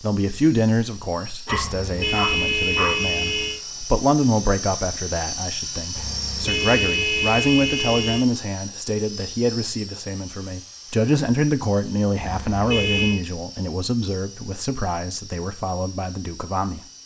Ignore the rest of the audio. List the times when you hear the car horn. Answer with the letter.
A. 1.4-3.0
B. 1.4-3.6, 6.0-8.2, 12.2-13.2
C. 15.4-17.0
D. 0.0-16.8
B.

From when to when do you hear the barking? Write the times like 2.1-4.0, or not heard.
1.4-3.0.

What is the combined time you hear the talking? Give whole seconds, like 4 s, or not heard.
17 s.